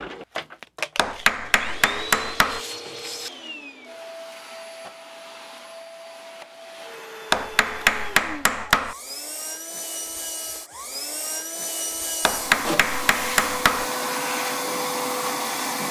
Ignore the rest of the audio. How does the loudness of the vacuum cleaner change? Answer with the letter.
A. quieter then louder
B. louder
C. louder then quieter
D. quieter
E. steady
A.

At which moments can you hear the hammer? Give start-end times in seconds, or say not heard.
0.9-2.6, 7.3-8.9, 12.2-13.9.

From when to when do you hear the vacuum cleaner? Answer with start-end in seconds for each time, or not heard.
0.0-15.8.